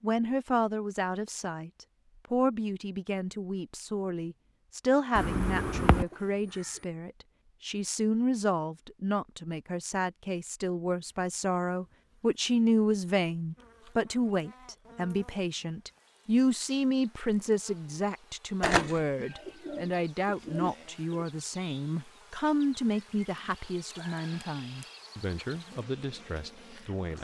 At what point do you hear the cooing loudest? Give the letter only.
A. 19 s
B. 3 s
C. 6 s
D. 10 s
A.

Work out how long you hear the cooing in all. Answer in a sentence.
You can hear the cooing for 4 seconds altogether.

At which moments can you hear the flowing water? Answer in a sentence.
You can't hear the flowing water here.